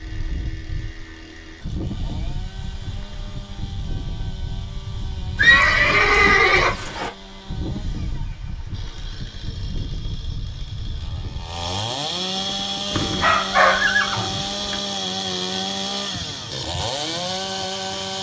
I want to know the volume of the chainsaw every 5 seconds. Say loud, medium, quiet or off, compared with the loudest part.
quiet, quiet, loud, loud.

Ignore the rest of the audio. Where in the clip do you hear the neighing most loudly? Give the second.
6 s.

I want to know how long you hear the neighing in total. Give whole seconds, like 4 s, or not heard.
4 s.